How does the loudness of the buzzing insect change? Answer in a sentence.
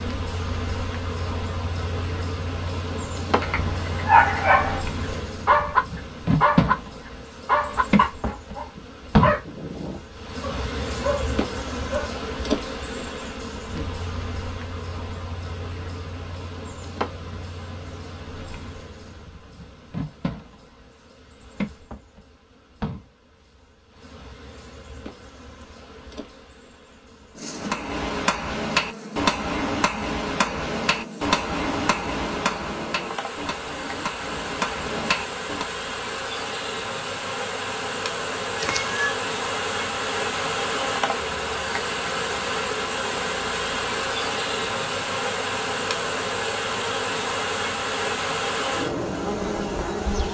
The volume of the buzzing insect goes down, then up.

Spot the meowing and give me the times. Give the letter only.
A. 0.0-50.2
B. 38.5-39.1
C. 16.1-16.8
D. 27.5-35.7
B.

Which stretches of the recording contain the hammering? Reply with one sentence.
The hammering can be heard from 27.5 to 35.7 s.